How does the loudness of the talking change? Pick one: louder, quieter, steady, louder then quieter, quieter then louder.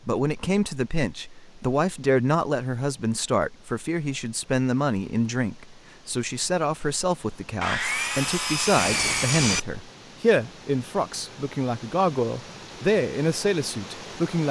steady.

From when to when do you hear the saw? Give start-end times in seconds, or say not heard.
7.6-9.6.